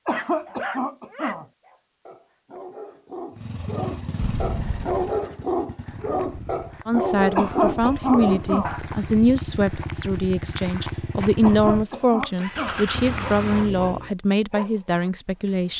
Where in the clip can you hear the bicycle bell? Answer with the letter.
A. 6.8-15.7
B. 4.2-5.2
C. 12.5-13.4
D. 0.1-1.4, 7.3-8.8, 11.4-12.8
B.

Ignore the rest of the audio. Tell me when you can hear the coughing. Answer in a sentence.
You can hear the coughing from 0.1 to 1.4 s, from 7.3 to 8.8 s and from 11.4 to 12.8 s.